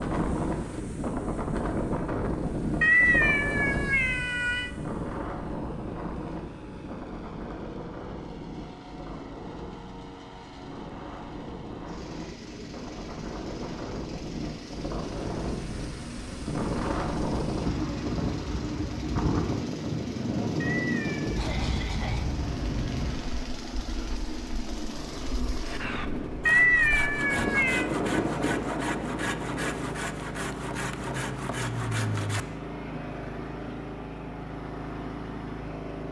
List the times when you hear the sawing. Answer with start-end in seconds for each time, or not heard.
25.6-32.5.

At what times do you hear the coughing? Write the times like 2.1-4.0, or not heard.
21.4-22.3.